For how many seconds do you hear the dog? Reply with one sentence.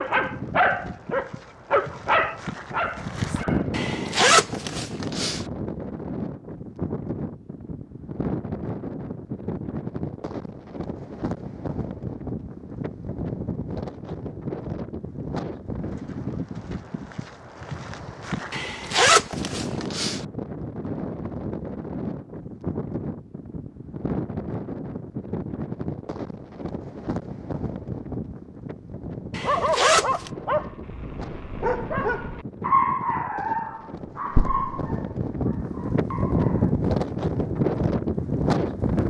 The dog can be heard for 11 seconds in total.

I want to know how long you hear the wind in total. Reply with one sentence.
You can hear the wind for 39 seconds altogether.